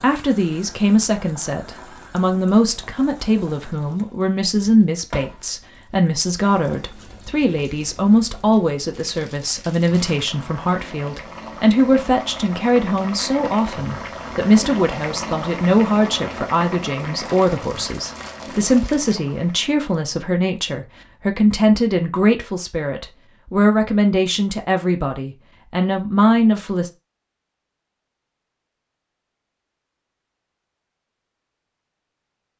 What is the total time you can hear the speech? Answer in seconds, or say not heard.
27 s.